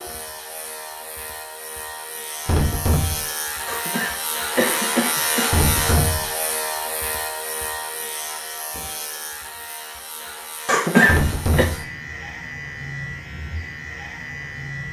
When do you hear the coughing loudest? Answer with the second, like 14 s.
11 s.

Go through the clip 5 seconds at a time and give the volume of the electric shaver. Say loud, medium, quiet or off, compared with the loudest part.
loud, loud, medium.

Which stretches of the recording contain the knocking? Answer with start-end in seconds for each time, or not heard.
2.5-3.2, 5.5-6.3, 11.1-11.8.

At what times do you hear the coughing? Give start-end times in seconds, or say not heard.
3.6-5.7, 10.7-11.7.